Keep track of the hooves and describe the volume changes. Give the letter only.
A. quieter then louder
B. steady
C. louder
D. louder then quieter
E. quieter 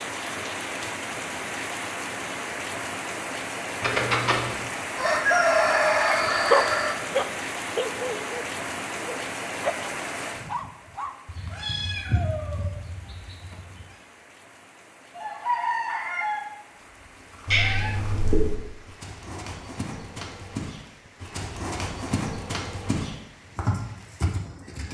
C.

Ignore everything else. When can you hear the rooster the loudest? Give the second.
5 s.